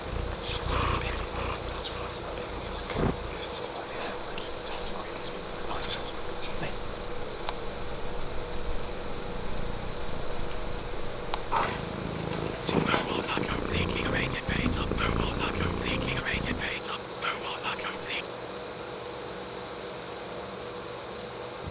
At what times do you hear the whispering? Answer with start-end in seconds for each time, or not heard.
0.4-6.8, 12.5-18.2.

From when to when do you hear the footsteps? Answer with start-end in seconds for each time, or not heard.
not heard.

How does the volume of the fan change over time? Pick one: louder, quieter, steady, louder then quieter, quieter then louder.
steady.